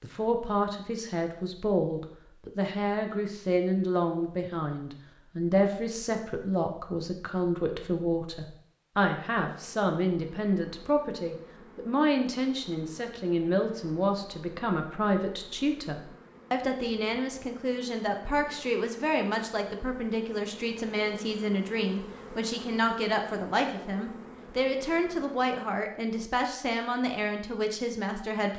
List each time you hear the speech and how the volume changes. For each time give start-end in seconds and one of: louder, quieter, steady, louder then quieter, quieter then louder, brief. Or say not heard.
0.0-28.5 steady.